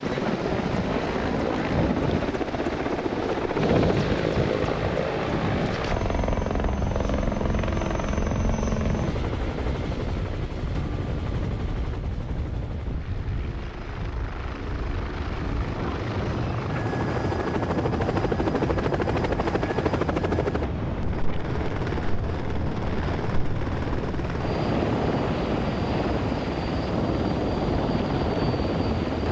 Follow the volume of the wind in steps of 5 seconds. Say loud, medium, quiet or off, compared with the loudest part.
loud, loud, medium, loud, loud, loud.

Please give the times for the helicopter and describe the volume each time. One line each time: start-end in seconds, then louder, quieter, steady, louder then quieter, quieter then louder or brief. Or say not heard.
0.0-29.2 quieter then louder.